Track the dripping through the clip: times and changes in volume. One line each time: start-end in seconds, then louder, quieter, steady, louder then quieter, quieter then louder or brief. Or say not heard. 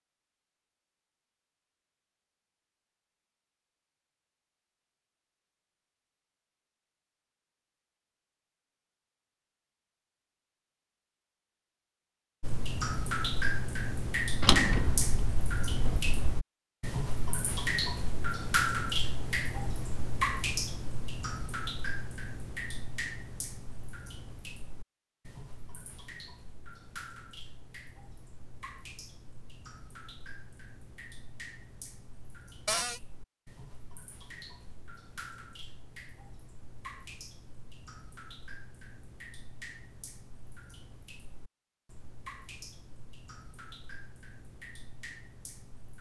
12.4-45.9 quieter.